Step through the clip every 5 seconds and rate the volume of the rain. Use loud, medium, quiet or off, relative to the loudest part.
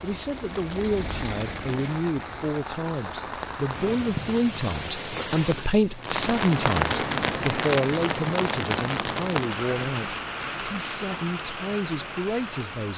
medium, loud, medium.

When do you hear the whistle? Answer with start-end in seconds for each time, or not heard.
not heard.